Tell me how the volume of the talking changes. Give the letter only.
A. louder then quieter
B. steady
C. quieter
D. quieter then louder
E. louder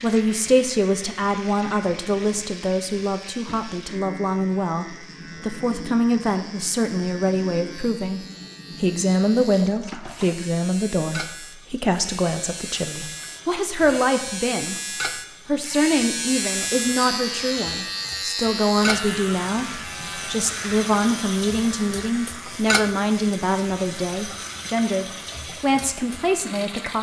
B.